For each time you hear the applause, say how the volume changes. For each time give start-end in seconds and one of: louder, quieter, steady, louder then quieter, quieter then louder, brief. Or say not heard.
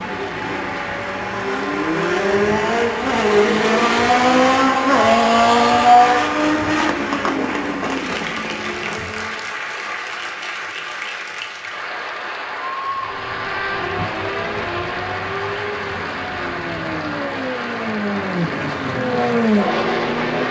0.0-20.4 steady.